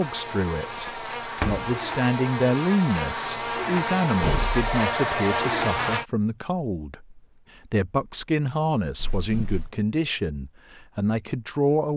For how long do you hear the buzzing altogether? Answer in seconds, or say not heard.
6 s.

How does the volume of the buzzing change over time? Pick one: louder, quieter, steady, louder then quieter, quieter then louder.
louder.